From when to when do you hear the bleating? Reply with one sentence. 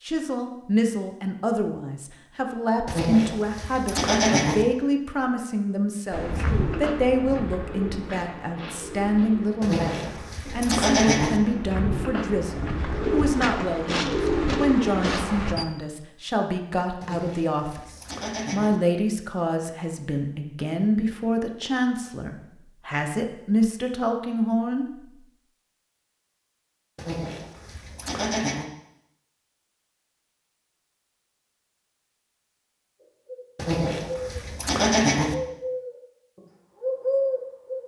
The bleating can be heard from 2.9 to 4.7 s, from 9.6 to 11.4 s, from 17.0 to 18.8 s, from 26.9 to 28.6 s and from 33.5 to 35.4 s.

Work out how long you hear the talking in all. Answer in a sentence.
You can hear the talking for 24 seconds altogether.